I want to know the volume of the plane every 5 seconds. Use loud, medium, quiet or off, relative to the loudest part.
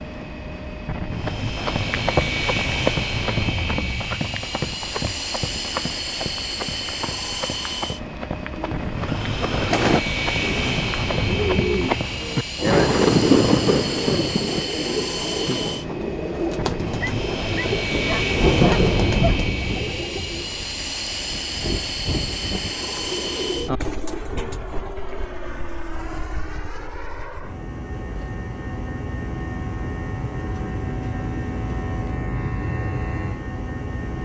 loud, loud, loud, loud, loud, medium, loud.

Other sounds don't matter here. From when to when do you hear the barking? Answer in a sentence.
You can hear the barking from 17.0 to 19.4 s.